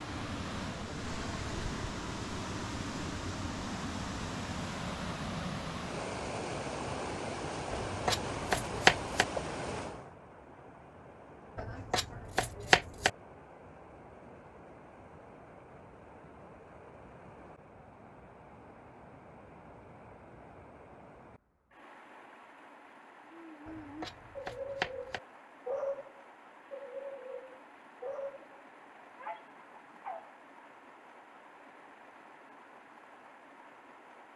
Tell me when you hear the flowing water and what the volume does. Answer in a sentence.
You can hear the flowing water from 0.0 to 34.3 s, getting quieter.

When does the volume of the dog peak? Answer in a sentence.
The volume of the dog peaks at 26 seconds.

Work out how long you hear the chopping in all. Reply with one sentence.
You can hear the chopping for 5 seconds altogether.